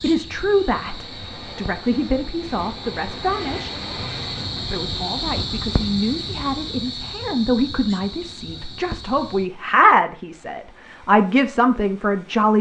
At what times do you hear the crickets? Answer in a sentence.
You can hear the crickets from 0.0 to 9.5 s.